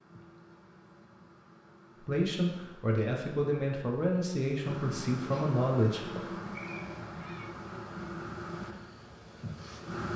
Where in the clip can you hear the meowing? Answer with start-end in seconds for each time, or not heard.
6.5-7.5.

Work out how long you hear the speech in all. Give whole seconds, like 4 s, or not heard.
4 s.